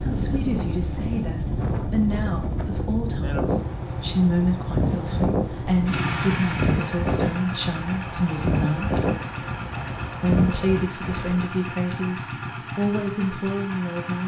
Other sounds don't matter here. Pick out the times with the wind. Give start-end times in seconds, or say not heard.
0.0-11.6.